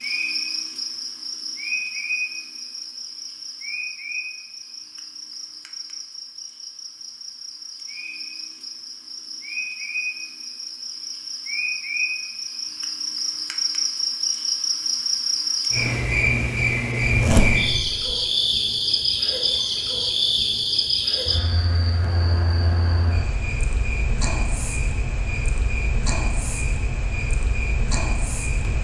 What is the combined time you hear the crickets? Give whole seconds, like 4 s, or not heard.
29 s.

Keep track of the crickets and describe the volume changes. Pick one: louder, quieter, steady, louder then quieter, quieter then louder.
louder then quieter.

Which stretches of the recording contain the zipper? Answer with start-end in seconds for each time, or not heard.
17.0-18.1.